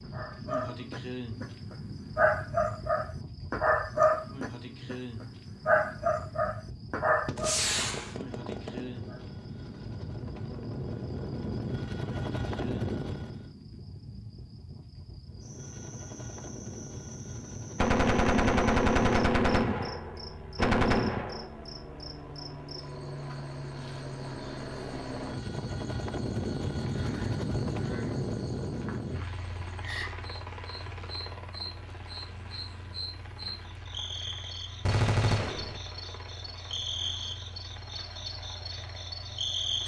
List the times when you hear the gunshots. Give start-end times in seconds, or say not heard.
7.2-8.8, 17.8-21.4, 34.9-35.8.